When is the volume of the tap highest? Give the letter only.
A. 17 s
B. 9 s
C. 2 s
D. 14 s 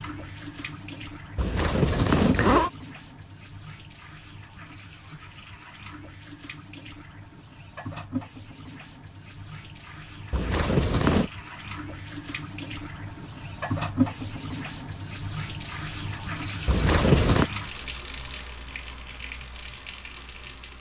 D.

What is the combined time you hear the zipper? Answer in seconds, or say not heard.
3 s.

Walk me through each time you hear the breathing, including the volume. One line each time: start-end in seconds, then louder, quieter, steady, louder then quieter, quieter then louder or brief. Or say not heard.
not heard.